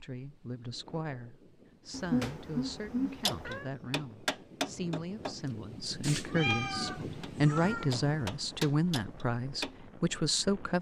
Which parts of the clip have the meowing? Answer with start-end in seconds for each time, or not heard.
1.9-3.7, 6.0-7.9.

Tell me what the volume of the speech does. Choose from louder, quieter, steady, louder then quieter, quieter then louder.
louder.